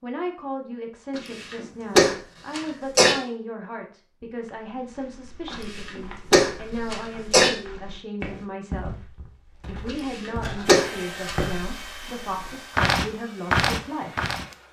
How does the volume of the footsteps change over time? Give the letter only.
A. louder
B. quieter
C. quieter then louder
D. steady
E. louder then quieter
A.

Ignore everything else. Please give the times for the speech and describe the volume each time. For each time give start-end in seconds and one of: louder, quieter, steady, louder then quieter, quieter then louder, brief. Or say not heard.
0.0-14.3 steady.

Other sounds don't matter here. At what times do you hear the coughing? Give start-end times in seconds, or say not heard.
1.1-3.1, 5.5-7.5, 9.8-11.3.